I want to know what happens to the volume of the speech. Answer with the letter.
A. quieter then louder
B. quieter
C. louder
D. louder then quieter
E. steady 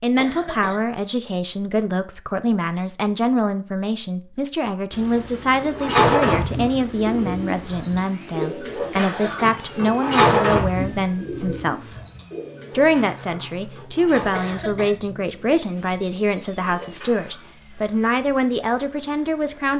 E.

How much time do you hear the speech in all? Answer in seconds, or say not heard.
19 s.